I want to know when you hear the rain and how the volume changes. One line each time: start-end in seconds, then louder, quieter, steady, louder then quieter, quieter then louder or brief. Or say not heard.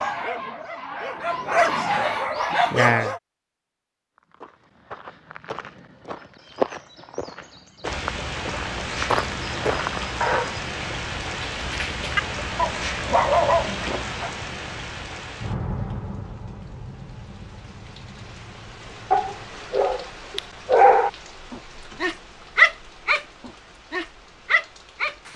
7.8-25.3 quieter.